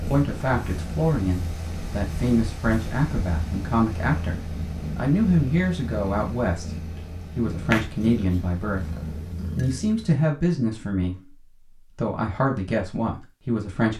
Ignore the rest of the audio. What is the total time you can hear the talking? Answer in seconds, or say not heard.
13 s.